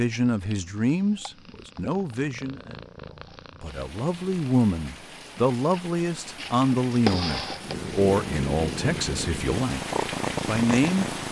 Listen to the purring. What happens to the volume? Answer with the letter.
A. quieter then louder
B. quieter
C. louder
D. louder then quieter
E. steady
C.